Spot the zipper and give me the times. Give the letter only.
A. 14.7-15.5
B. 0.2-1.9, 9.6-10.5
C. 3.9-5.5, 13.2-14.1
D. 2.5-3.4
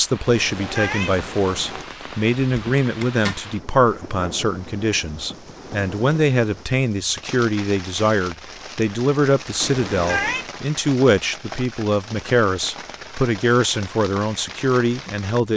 D.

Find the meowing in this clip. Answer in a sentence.
The meowing can be heard from 0.2 to 1.9 s and from 9.6 to 10.5 s.